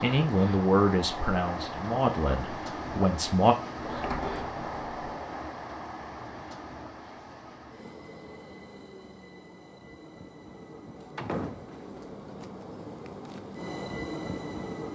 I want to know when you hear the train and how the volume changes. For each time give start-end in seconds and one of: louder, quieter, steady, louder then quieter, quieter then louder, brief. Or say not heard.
0.0-14.9 quieter then louder.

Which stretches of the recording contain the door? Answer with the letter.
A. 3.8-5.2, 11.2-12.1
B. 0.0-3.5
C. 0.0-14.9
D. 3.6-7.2
A.